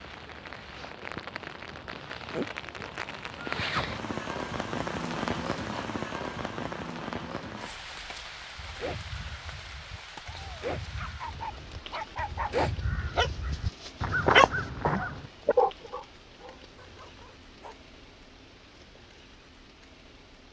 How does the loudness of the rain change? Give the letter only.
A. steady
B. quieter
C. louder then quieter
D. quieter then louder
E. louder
B.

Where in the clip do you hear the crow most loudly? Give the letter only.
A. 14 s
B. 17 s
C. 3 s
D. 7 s
A.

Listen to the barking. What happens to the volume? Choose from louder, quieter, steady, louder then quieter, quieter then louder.
louder then quieter.